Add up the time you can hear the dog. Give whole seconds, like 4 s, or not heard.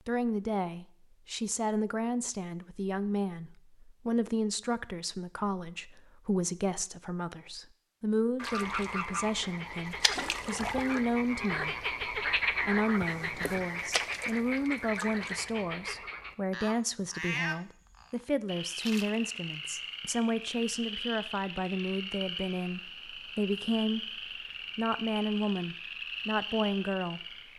not heard.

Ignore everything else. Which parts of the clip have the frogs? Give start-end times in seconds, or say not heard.
8.3-27.5.